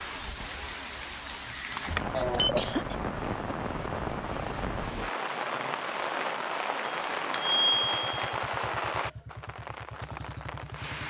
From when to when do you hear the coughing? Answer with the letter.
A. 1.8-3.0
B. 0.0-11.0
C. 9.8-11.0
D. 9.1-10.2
A.